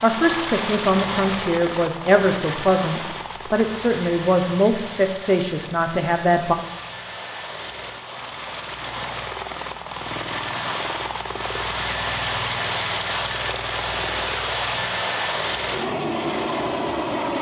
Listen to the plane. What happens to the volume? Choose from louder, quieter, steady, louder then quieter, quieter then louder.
quieter then louder.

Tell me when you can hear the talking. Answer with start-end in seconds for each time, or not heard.
0.0-6.5.